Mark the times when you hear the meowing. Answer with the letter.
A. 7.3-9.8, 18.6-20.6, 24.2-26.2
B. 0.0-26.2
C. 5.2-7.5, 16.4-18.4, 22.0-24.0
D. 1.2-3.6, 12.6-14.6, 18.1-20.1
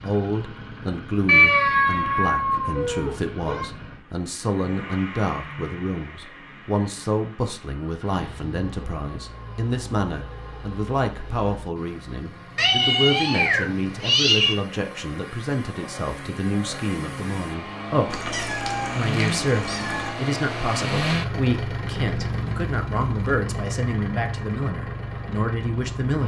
D.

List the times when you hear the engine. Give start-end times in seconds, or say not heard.
0.0-26.2.